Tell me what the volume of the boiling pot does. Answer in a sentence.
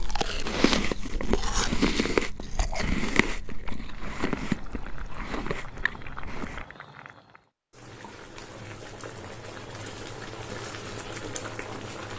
The loudness of the boiling pot goes up.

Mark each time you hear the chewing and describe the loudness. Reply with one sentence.
The chewing can be heard from 0.0 to 6.7 s, getting quieter.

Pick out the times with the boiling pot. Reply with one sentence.
The boiling pot can be heard from 3.8 to 12.1 s.